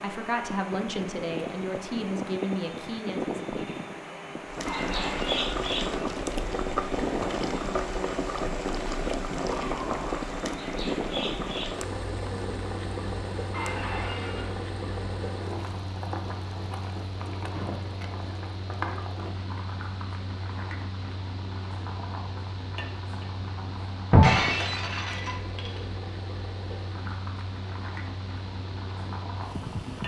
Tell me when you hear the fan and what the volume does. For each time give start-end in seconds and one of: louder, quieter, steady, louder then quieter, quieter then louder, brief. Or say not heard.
0.0-30.0 quieter.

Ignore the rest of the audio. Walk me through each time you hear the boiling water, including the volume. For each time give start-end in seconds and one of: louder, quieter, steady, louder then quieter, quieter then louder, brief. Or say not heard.
4.5-30.0 quieter.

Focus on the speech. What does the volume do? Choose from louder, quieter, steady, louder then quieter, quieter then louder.
quieter.